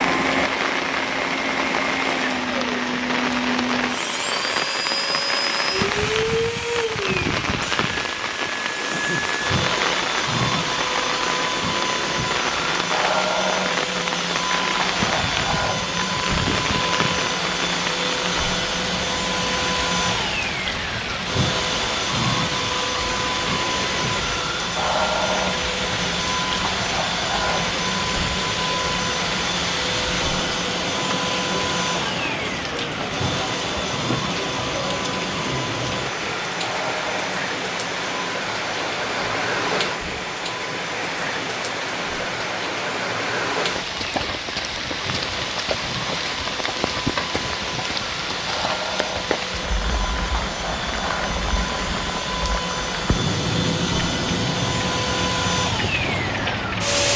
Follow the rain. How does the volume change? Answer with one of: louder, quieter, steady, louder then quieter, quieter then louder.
steady.